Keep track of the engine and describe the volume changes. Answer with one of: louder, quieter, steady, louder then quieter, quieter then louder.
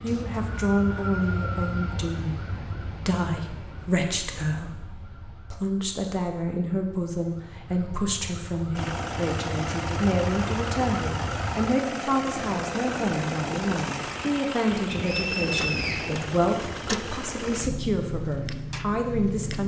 steady.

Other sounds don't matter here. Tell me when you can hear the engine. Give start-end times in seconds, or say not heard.
8.7-19.6.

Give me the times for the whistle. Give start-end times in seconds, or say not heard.
0.1-1.9, 14.9-16.1.